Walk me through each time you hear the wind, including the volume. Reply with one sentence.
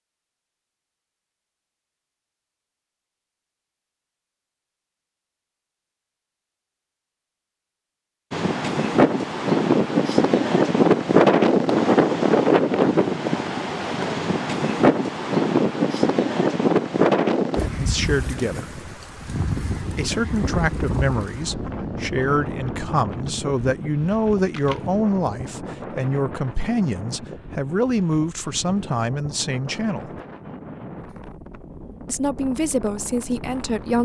The wind can be heard from 8.3 to 33.9 s, getting quieter.